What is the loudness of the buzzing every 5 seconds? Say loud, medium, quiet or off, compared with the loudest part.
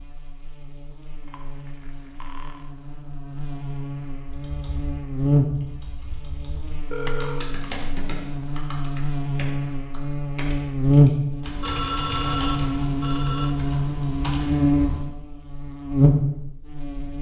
quiet, medium, loud, loud.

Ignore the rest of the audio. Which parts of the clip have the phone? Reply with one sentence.
The phone can be heard from 1.2 to 2.7 s, from 6.9 to 7.5 s and from 11.6 to 13.6 s.